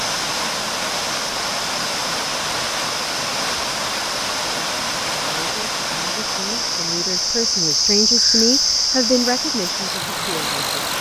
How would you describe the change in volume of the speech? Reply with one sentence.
The volume of the speech goes up, then down.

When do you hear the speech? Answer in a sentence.
The speech can be heard from 4.4 to 10.9 s.